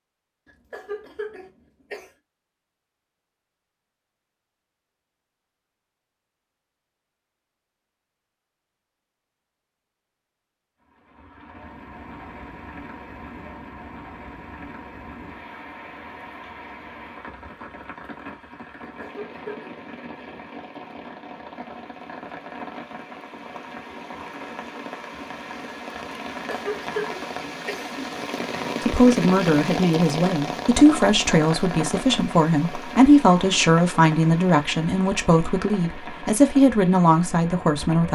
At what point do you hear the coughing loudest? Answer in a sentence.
The volume of the coughing peaks at 27 seconds.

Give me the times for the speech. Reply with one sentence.
The speech can be heard from 28.8 to 38.1 s.